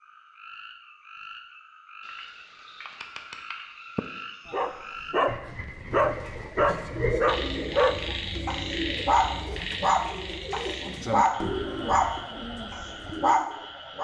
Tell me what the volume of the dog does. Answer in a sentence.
The volume of the dog stays about the same.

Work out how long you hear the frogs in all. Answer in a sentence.
The frogs can be heard for 14 seconds in total.